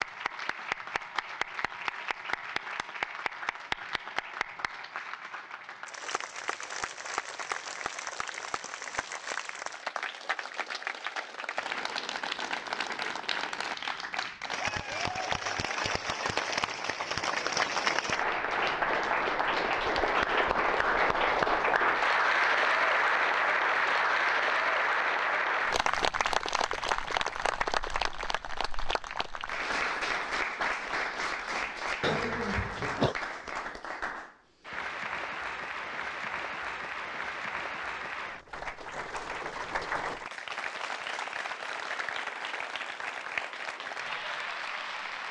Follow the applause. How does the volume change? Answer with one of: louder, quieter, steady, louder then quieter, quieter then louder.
louder then quieter.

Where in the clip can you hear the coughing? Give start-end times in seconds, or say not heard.
32.0-33.1.